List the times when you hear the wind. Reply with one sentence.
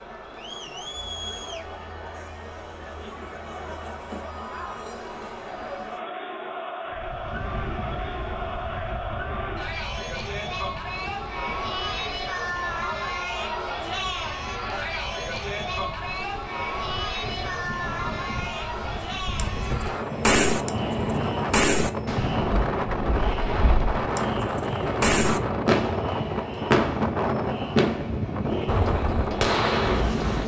The wind can be heard from 6.9 to 30.4 s.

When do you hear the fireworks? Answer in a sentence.
The fireworks can be heard from 19.4 to 30.4 s.